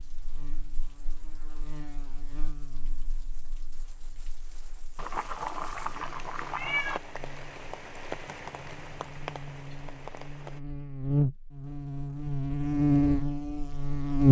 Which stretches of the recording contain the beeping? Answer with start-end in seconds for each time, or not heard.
not heard.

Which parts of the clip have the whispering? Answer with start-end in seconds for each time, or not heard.
not heard.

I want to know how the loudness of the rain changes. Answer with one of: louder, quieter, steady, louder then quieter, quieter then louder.
louder.